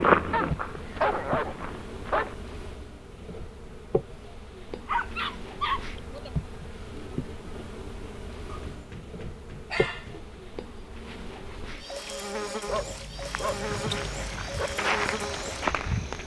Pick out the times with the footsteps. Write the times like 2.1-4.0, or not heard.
0.0-2.5, 13.2-16.2.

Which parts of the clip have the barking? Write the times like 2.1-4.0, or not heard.
0.3-2.4, 4.8-6.3, 8.5-10.4, 12.7-14.7.